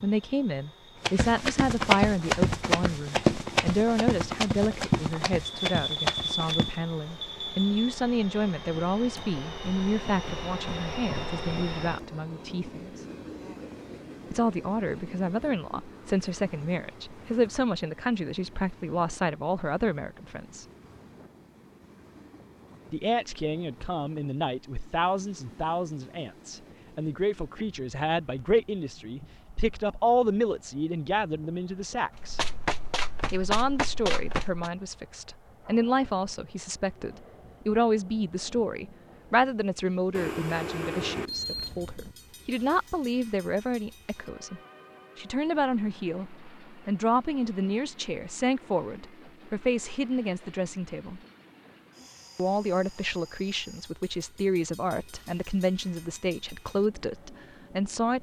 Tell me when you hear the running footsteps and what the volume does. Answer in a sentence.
The running footsteps can be heard from 1.0 to 6.8 s, getting quieter; and briefly from 32.1 to 34.7 s.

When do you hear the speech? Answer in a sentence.
You can hear the speech from 0.0 to 13.1 s, from 14.3 to 20.6 s, from 22.9 to 32.4 s, from 33.3 to 51.2 s and from 52.4 to 58.1 s.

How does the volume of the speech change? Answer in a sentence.
The loudness of the speech stays about the same.